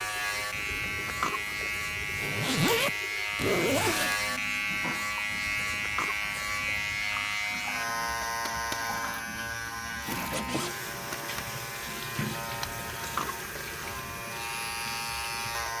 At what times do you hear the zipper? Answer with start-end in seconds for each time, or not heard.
2.1-4.2, 10.1-11.2.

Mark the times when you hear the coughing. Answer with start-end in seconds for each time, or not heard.
0.5-2.3, 5.2-7.0, 12.4-14.2.